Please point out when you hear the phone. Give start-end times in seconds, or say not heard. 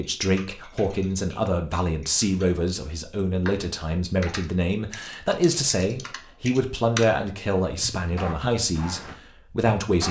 not heard.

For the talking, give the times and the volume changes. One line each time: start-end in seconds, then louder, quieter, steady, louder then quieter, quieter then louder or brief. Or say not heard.
0.0-10.0 steady.